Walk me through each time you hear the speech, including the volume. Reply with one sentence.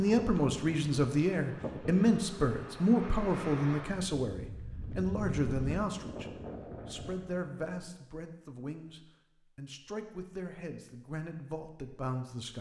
You can hear the speech from 0.0 to 12.5 s, getting quieter.